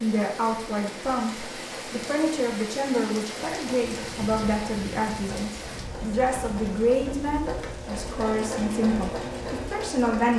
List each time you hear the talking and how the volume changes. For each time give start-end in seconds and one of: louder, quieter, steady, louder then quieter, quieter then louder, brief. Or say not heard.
0.0-10.3 steady.